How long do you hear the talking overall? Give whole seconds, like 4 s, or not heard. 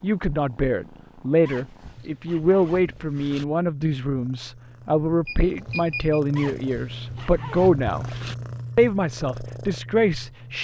10 s.